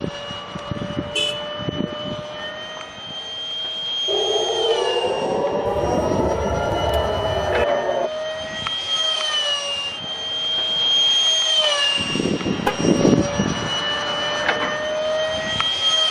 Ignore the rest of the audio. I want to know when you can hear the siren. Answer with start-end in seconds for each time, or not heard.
4.0-8.1.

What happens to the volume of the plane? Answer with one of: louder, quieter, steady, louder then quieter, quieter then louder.
louder.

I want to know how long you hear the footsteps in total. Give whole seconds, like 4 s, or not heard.
not heard.